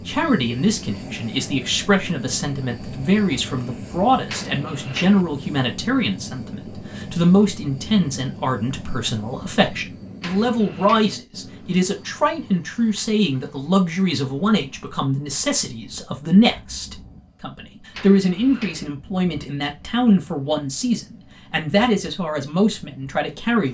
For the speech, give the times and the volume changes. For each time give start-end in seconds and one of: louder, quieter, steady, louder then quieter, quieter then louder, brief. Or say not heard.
0.1-23.6 steady.